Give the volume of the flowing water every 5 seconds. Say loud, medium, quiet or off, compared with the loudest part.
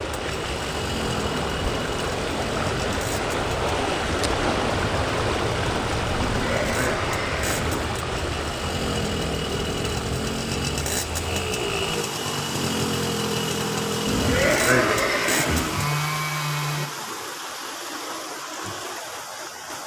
loud, loud, medium, medium.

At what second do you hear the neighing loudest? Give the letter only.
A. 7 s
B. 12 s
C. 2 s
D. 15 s
D.